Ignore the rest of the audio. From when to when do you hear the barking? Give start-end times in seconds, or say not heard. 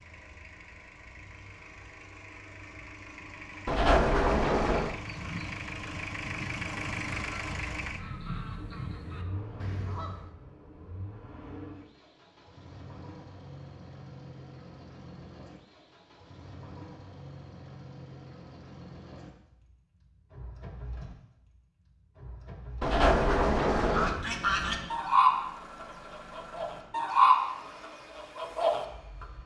not heard.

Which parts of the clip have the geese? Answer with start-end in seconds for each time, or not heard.
4.8-10.3, 23.8-29.2.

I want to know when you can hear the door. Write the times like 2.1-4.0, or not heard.
3.6-5.0, 22.8-24.2.